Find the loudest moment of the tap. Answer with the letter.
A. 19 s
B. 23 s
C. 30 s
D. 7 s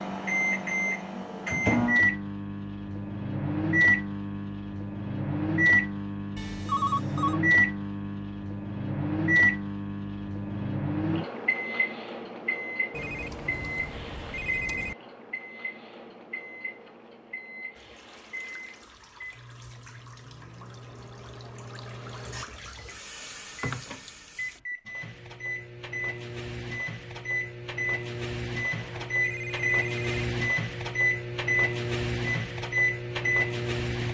B.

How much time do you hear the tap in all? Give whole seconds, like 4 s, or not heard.
7 s.